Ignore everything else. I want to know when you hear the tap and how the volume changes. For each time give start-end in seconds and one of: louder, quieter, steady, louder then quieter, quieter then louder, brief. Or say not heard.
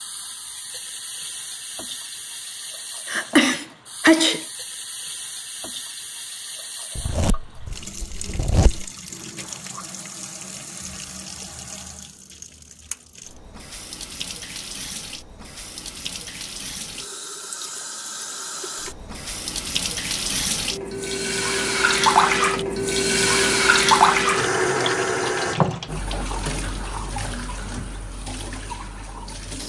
0.0-29.6 louder.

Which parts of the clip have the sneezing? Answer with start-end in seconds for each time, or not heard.
3.0-4.5.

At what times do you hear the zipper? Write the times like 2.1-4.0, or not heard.
7.0-8.9.